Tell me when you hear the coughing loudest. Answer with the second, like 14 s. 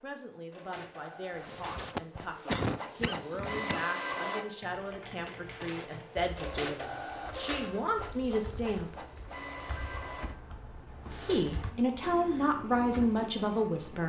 3 s.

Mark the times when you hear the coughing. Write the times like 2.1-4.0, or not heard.
1.4-3.9.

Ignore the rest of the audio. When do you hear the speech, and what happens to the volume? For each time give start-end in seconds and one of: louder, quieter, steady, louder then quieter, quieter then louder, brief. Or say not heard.
0.0-9.0 louder
11.2-14.0 brief.